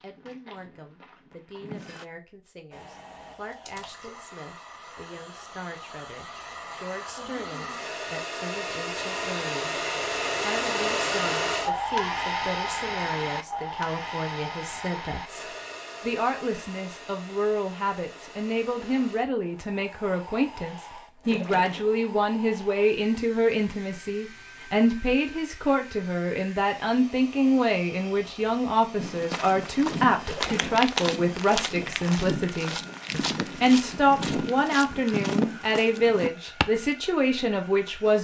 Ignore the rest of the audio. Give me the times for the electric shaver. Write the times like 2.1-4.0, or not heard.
not heard.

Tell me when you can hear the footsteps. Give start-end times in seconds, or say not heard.
0.0-2.0, 28.9-36.7.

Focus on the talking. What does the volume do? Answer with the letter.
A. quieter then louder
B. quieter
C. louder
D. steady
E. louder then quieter
C.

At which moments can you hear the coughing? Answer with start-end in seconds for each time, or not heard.
not heard.